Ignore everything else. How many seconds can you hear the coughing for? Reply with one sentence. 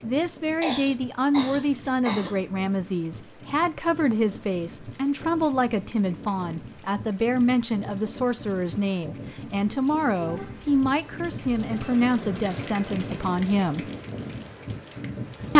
You can hear the coughing for 2 seconds altogether.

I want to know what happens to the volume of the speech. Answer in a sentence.
The loudness of the speech stays about the same.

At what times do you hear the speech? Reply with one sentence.
You can hear the speech from 0.0 to 13.9 s.